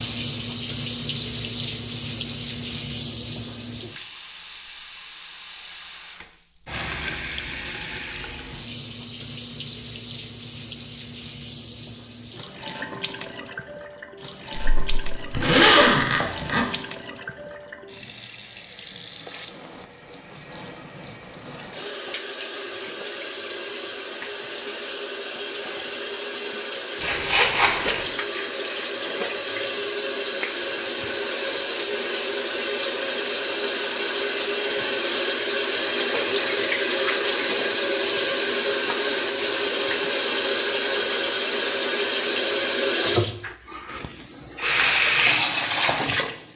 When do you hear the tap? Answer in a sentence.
You can hear the tap from 0.0 to 46.5 s.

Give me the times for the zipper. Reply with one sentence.
You can hear the zipper from 14.8 to 16.6 s and from 27.0 to 28.1 s.